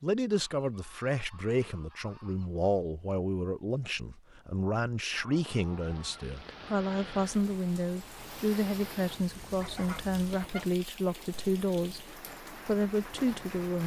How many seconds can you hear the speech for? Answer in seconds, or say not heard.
14 s.